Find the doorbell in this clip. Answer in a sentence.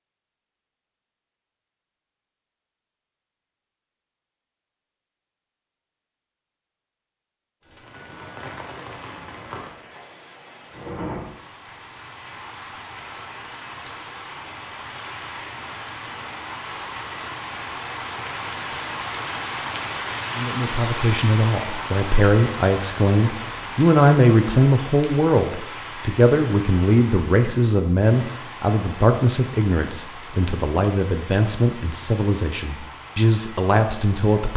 You can hear the doorbell from 7.6 to 8.7 s.